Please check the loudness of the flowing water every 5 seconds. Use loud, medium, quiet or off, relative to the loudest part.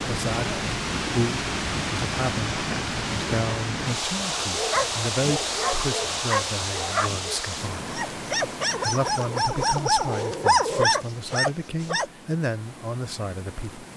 loud, loud, quiet.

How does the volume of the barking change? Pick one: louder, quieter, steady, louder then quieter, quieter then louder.
louder.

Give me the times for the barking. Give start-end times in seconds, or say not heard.
4.3-12.1.